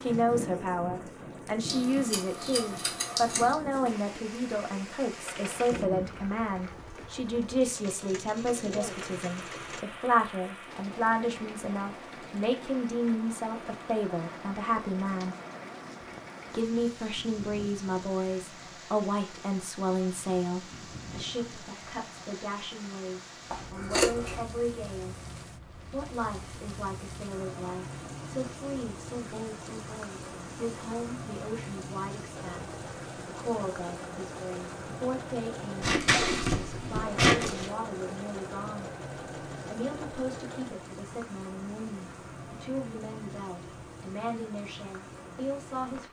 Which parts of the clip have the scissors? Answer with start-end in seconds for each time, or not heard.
1.6-3.5, 23.5-24.4, 35.8-37.6.